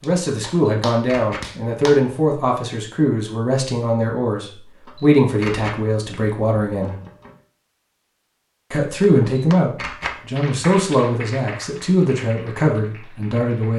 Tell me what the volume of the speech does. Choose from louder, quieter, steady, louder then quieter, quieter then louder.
steady.